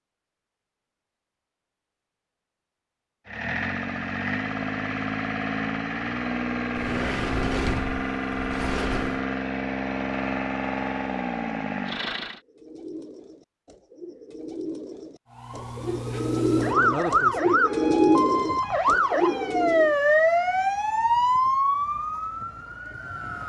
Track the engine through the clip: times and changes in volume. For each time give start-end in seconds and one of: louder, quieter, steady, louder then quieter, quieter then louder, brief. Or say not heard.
3.2-12.4 steady.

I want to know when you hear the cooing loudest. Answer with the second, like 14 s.
18 s.